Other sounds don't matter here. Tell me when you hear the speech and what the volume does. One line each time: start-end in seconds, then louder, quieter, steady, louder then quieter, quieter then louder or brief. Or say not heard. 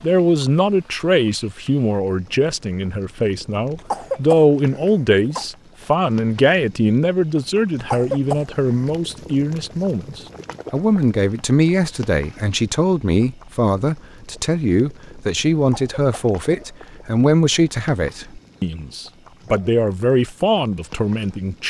0.0-21.6 steady.